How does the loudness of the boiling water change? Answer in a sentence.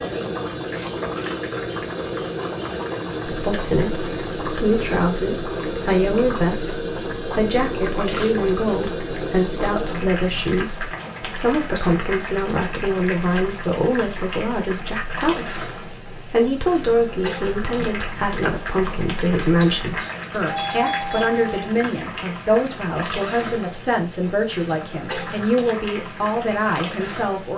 The volume of the boiling water stays about the same.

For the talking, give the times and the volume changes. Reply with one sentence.
The talking can be heard from 3.2 to 27.5 s, at a steady volume.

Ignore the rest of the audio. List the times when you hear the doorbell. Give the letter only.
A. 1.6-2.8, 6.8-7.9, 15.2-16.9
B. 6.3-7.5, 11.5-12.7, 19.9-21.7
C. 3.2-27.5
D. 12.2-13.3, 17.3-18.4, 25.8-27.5
B.